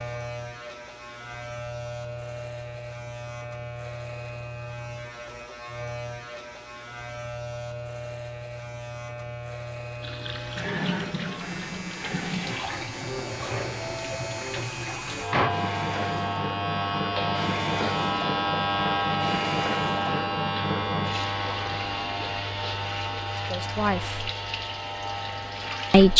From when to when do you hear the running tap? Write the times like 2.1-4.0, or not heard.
10.0-26.1.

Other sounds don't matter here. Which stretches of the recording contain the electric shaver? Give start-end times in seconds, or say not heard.
0.0-26.1.